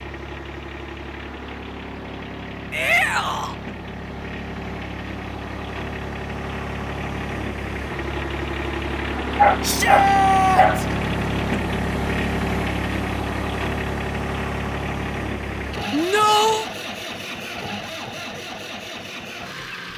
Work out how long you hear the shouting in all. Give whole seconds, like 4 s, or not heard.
3 s.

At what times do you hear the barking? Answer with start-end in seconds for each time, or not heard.
9.3-10.8.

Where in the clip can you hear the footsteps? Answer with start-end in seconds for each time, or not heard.
not heard.